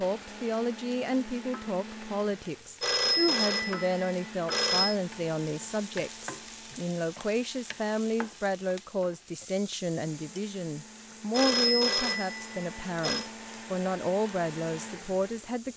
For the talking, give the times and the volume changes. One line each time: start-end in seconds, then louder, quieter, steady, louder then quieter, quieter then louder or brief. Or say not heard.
0.0-15.7 steady.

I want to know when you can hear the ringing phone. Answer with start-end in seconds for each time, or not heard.
2.8-5.0, 11.3-13.3.